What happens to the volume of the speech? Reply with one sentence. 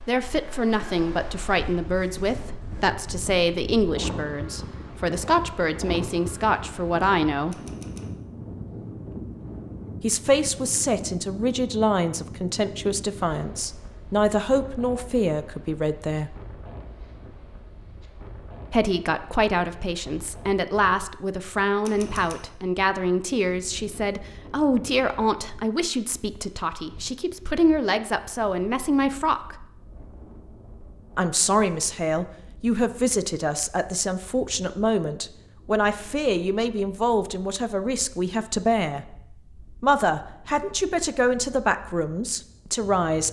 The volume of the speech stays about the same.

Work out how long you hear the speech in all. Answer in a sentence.
You can hear the speech for 37 seconds altogether.